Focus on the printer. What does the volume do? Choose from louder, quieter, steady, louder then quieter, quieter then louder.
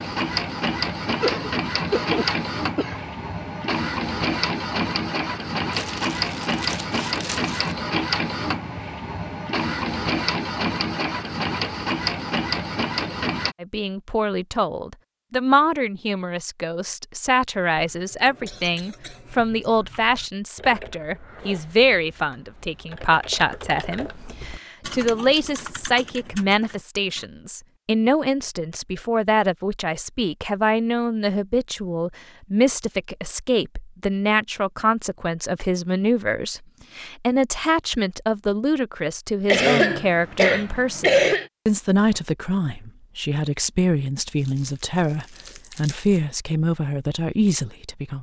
steady.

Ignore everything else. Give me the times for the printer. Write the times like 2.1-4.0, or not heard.
0.0-13.6.